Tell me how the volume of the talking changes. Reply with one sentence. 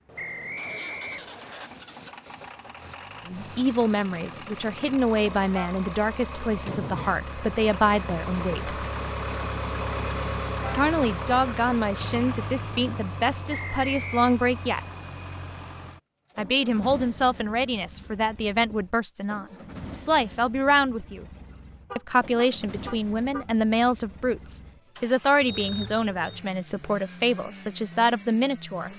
The volume of the talking stays about the same.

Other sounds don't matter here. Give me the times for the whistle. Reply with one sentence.
The whistle can be heard from 0.1 to 1.7 s, from 13.5 to 14.3 s and from 25.4 to 26.4 s.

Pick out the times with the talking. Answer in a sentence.
The talking can be heard from 3.2 to 8.8 s, from 10.7 to 14.8 s, from 16.4 to 21.2 s and from 21.9 to 28.9 s.